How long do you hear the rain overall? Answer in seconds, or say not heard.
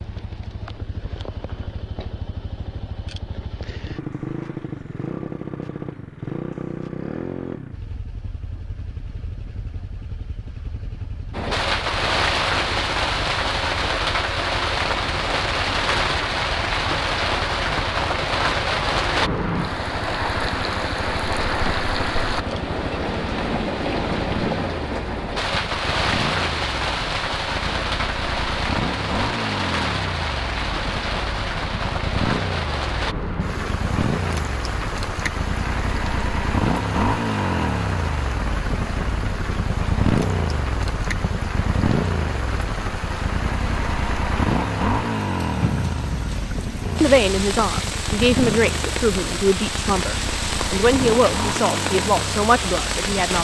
42 s.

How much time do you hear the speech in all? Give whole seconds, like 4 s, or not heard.
6 s.